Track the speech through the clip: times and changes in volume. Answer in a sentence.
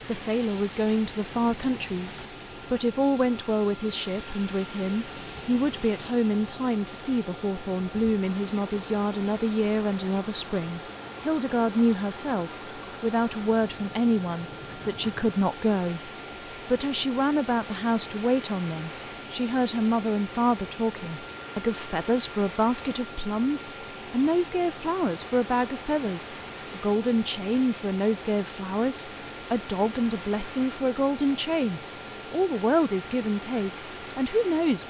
You can hear the speech from 0.1 to 34.8 s, at a steady volume.